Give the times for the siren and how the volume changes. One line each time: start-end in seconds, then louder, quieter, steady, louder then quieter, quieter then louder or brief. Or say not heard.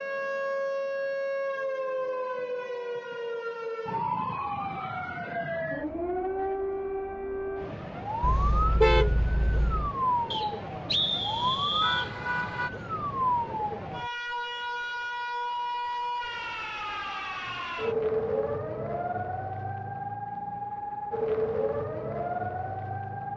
0.0-23.3 steady.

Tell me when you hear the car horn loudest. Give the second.
9 s.